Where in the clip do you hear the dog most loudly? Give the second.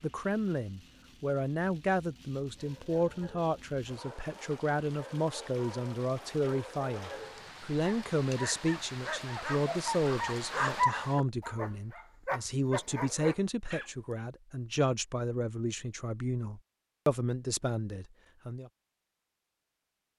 11 s.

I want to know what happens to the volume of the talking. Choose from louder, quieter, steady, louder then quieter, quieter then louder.
steady.